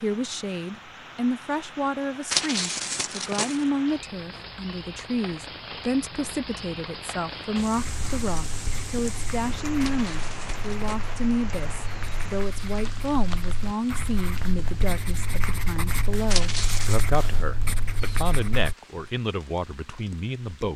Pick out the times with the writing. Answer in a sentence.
You can hear the writing from 7.6 to 18.8 s.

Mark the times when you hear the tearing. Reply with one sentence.
The tearing can be heard from 2.3 to 3.6 s, from 9.8 to 11.0 s and from 16.3 to 17.1 s.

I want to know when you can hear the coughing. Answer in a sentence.
The coughing can't be heard in this clip.